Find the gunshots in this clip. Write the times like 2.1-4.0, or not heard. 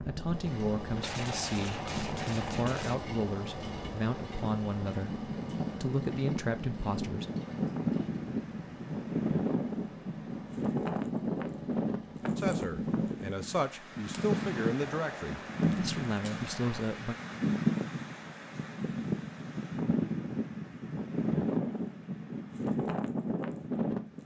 0.9-3.0, 14.1-16.9.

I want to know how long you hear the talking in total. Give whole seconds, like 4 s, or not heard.
12 s.